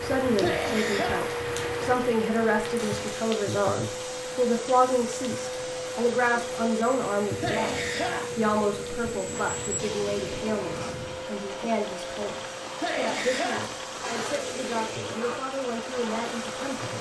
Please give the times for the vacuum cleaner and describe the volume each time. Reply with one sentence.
The vacuum cleaner can be heard from 0.0 to 16.9 s, at a steady volume.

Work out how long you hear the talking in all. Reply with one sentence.
The talking can be heard for 16 seconds in total.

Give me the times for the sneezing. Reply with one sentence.
You can hear the sneezing from 0.3 to 1.3 s, from 7.4 to 8.3 s and from 12.8 to 13.7 s.